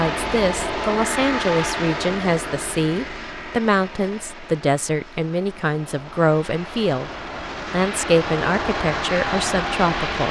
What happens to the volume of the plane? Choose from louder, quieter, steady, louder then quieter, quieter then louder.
quieter then louder.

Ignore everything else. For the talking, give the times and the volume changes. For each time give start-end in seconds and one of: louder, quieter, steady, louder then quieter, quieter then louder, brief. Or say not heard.
0.0-7.1 steady
7.7-10.2 brief.